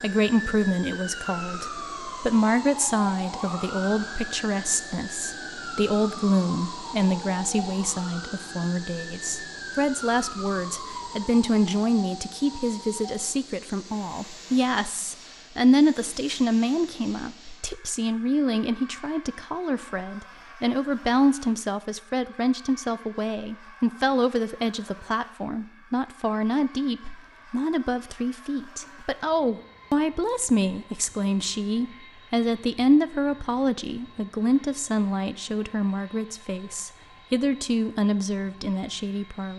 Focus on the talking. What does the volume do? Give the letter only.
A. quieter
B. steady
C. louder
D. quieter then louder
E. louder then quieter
B.